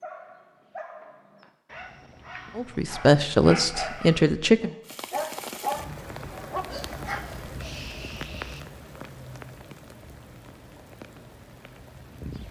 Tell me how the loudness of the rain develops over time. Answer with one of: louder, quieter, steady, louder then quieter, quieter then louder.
quieter.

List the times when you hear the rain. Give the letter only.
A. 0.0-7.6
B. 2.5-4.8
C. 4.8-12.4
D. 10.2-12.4
C.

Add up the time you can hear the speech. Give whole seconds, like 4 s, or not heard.
2 s.